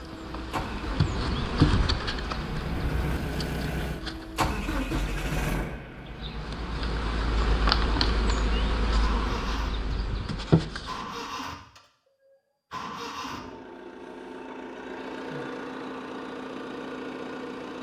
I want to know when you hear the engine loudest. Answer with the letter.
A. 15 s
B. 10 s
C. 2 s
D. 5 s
D.